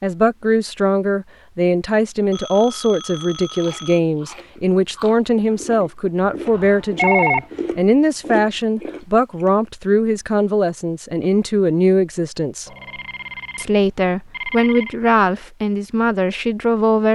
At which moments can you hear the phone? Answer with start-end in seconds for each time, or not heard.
2.3-4.0, 6.5-7.5, 12.7-14.9.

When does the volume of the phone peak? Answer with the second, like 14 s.
7 s.